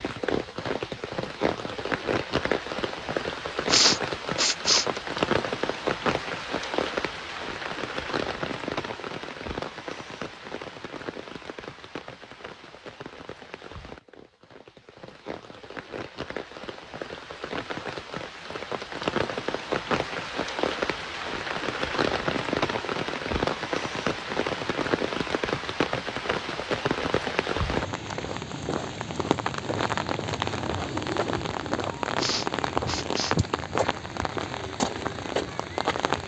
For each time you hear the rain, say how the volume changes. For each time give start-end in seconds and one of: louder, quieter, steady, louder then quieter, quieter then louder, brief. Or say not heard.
0.0-36.2 quieter then louder.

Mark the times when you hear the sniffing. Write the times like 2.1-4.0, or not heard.
3.6-5.0, 32.1-33.4.